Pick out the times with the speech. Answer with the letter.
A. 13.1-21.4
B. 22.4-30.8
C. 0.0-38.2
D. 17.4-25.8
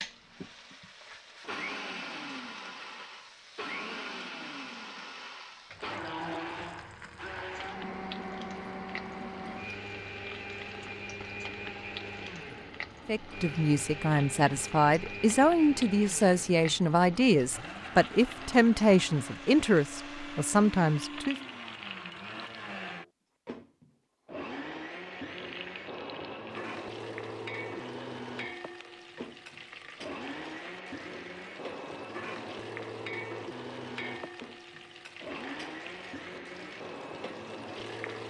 A.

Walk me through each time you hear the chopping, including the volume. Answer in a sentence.
The chopping can't be heard in this clip.